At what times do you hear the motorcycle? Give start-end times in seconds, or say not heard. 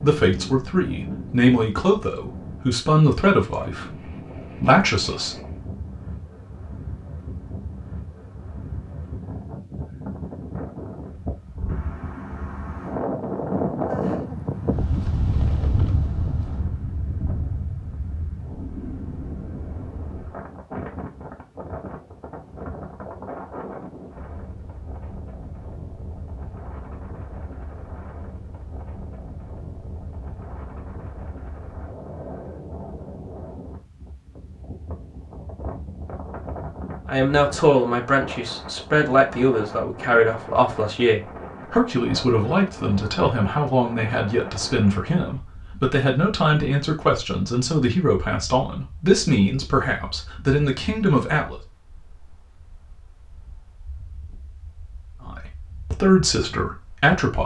not heard.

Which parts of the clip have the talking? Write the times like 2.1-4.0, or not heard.
0.0-5.3, 37.0-51.5, 55.2-57.4.